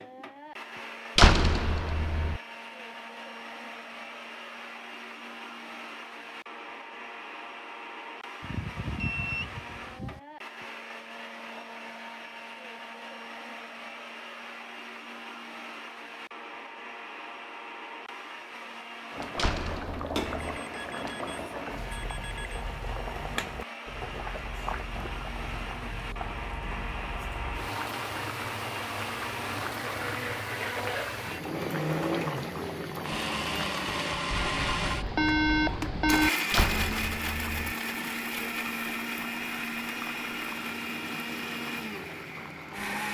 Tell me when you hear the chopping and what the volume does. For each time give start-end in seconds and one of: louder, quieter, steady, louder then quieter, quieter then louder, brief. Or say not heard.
not heard.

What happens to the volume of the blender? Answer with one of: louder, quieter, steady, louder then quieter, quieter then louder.
louder.